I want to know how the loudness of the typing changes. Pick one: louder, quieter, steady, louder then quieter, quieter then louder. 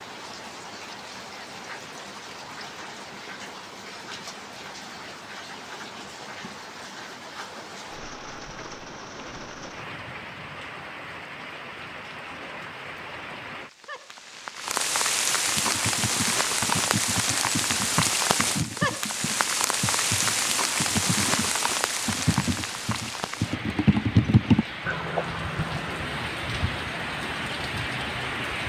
louder.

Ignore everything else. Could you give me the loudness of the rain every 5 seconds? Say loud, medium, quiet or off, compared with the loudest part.
quiet, quiet, medium, loud, loud, medium.